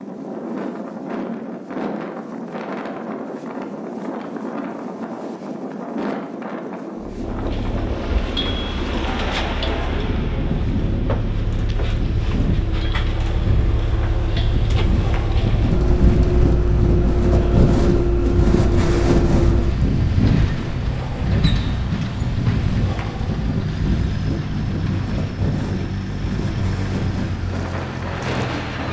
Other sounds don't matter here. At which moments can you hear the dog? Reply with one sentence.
The dog can't be heard in this clip.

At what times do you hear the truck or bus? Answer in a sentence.
You can hear the truck or bus from 7.0 to 28.8 s.